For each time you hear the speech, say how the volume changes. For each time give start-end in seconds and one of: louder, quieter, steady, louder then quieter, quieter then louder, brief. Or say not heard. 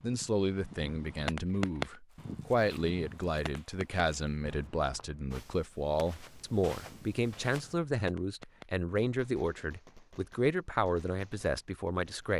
0.0-12.3 steady.